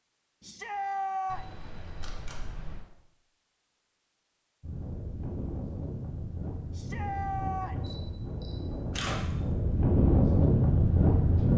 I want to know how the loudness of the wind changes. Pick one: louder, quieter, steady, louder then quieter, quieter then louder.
louder.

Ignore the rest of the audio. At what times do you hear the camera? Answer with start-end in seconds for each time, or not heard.
1.2-2.9, 7.8-9.2.